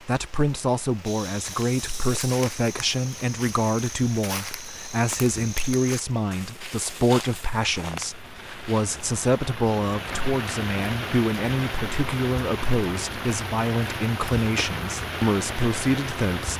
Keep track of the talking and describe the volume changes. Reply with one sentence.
The volume of the talking stays about the same.